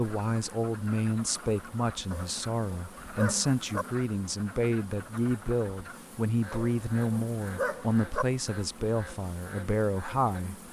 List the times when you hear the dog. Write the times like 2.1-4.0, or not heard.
2.1-3.9, 6.5-8.2.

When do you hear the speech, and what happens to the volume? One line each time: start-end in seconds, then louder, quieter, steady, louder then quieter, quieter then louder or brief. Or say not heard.
0.0-10.6 steady.